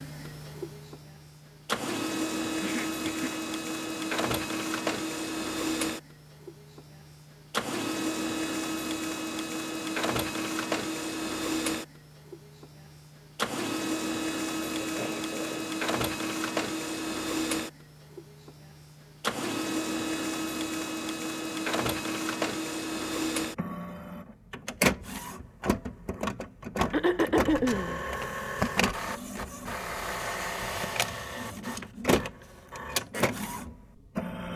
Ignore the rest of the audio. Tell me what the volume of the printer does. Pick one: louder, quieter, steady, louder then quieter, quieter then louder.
steady.